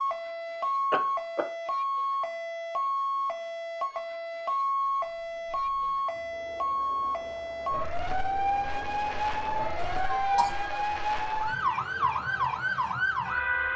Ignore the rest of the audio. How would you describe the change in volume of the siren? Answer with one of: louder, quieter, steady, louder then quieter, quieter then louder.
steady.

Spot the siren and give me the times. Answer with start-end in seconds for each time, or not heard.
0.0-13.7.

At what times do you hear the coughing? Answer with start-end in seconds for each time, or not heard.
0.9-1.4, 9.8-10.6.